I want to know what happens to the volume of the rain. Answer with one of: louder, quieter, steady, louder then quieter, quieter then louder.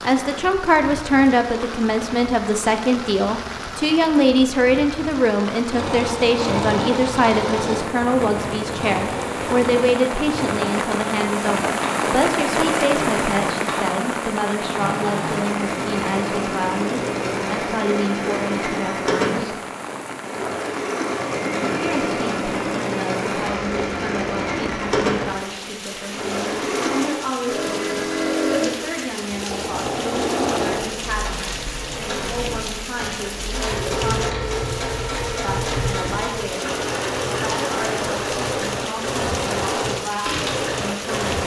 louder then quieter.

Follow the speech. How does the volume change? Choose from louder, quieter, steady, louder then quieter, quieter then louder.
quieter.